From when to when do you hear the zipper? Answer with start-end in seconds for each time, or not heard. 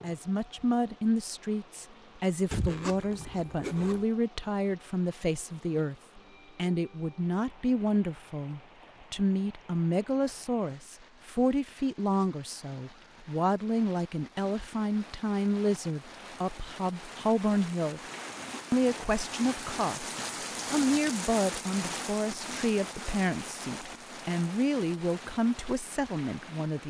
2.5-4.0.